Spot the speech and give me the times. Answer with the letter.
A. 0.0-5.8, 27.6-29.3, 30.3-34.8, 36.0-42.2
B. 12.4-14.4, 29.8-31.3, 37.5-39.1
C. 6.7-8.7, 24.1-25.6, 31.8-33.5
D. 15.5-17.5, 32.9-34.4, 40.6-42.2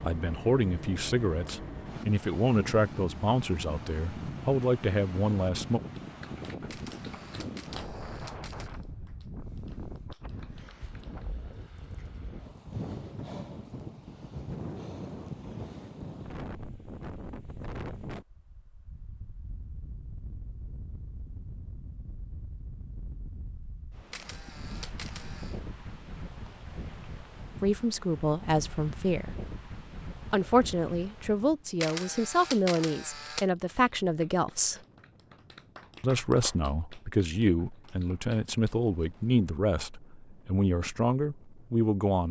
A.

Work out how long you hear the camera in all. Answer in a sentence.
You can hear the camera for 5 seconds altogether.